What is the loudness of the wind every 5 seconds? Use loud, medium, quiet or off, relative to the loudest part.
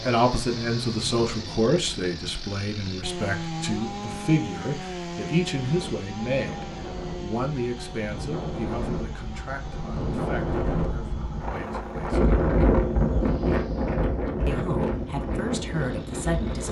quiet, medium, loud, medium.